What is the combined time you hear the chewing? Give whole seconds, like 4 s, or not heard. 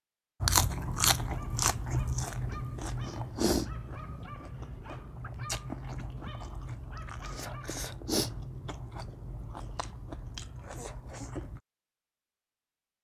11 s.